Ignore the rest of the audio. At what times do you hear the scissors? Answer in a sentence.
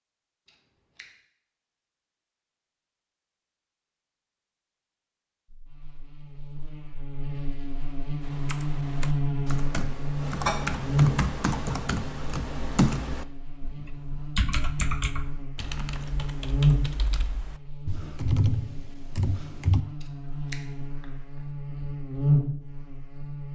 The scissors can be heard from 0.5 to 1.1 s and from 20.0 to 21.1 s.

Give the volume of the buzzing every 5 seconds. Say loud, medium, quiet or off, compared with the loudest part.
off, loud, loud, loud, loud.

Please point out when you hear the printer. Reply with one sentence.
You can't hear the printer here.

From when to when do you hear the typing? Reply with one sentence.
You can hear the typing from 8.2 to 19.9 s.